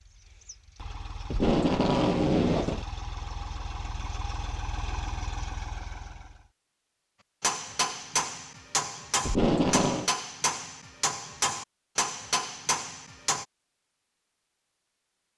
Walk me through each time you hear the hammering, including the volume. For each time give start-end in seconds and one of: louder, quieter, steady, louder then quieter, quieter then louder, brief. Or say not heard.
7.4-13.4 steady.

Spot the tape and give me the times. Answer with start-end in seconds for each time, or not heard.
1.2-2.9, 9.2-10.1.